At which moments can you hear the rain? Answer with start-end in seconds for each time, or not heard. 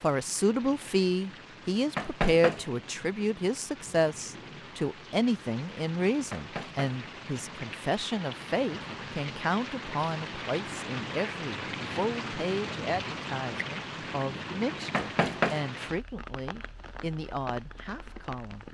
0.0-18.6.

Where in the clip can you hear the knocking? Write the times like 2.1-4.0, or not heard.
1.9-2.7, 6.3-6.9, 14.9-15.7.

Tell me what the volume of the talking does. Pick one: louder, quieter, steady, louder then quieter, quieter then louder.
quieter.